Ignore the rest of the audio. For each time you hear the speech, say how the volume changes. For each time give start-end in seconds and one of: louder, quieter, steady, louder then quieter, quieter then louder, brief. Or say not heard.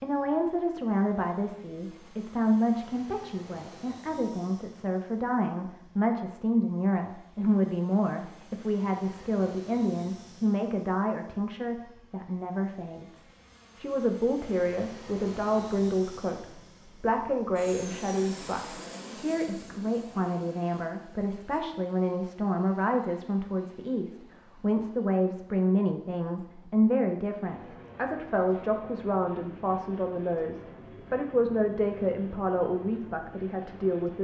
0.0-34.1 steady.